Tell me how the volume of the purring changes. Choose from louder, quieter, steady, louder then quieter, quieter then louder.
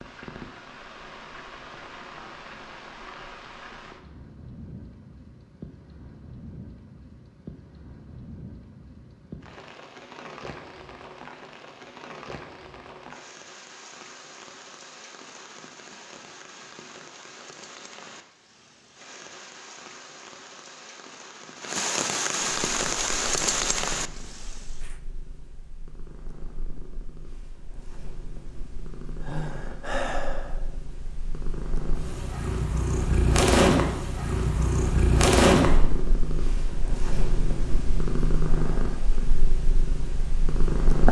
louder then quieter.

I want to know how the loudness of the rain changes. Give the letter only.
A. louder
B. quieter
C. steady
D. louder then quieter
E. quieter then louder
A.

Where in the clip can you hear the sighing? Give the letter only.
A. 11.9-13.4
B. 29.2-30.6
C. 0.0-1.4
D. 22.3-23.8
B.